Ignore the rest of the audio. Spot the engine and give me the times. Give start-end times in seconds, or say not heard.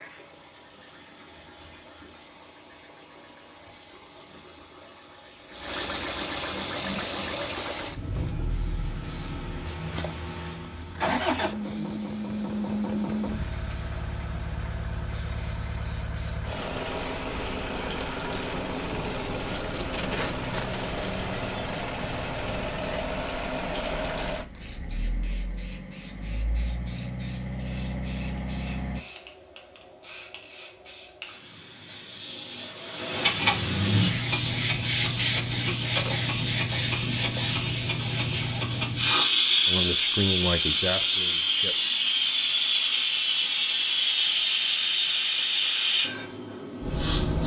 0.0-29.1.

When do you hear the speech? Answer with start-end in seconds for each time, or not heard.
39.6-41.8.